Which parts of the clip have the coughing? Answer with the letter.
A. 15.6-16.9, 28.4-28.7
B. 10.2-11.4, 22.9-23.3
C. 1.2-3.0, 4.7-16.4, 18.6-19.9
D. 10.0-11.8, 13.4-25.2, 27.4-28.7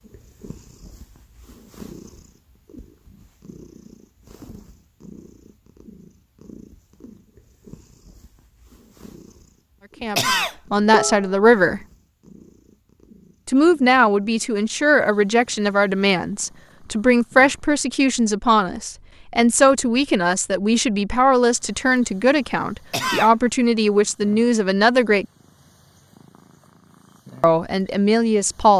B.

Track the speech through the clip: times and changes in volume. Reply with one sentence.
You can hear the speech briefly from 10.0 to 11.8 s; from 13.4 to 25.2 s, at a steady volume; and briefly from 27.4 to 28.7 s.